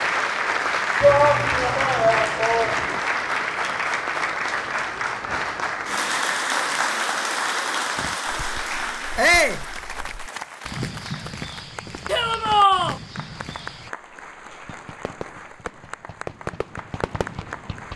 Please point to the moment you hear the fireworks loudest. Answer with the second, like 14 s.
16 s.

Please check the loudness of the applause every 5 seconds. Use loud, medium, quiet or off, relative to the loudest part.
loud, loud, quiet, quiet.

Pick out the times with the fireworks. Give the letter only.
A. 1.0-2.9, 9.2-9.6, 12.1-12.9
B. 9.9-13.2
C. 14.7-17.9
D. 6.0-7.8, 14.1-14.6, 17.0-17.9
C.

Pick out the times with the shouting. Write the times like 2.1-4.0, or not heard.
1.0-2.9, 9.2-9.6, 12.1-12.9.